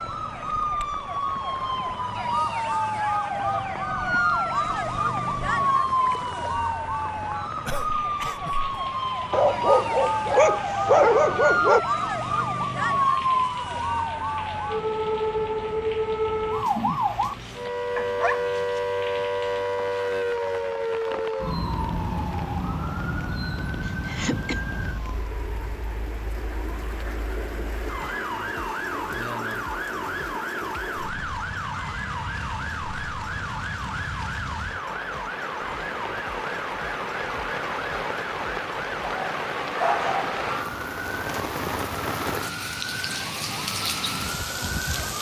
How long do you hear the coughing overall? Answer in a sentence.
You can hear the coughing for 2 seconds altogether.